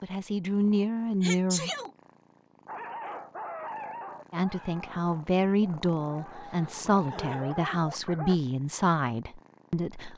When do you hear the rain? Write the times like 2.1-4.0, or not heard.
not heard.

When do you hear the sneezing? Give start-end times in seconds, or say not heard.
1.2-1.9, 6.0-7.5.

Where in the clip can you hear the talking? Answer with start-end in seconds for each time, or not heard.
0.0-1.7, 4.3-10.1.